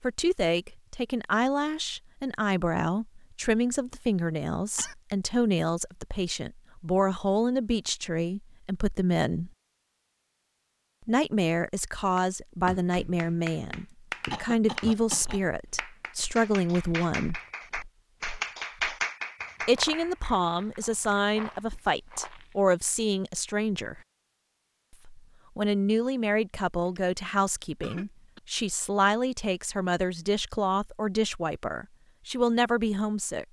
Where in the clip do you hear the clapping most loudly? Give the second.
19 s.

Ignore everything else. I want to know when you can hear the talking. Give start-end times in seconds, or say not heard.
0.0-9.5, 11.1-17.4, 19.6-24.0, 25.1-33.4.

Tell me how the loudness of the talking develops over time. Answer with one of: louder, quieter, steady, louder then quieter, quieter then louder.
steady.